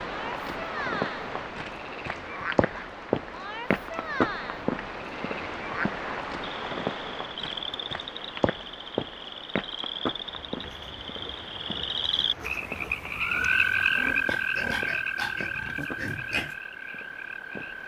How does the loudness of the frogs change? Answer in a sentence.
The volume of the frogs goes up.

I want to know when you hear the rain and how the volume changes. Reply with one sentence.
You can hear the rain from 0.0 to 17.8 s, getting quieter.